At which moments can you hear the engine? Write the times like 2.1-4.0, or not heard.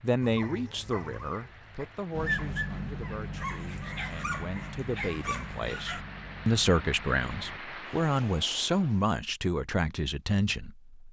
2.1-7.6.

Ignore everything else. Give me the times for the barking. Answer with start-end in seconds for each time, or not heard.
0.2-6.0.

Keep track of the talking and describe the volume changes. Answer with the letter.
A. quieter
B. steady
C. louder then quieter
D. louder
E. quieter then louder
E.